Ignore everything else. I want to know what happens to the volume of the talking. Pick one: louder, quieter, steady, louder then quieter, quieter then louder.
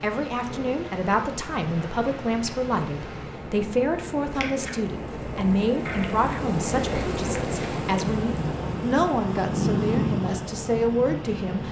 steady.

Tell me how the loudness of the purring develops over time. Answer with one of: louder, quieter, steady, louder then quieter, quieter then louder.
louder.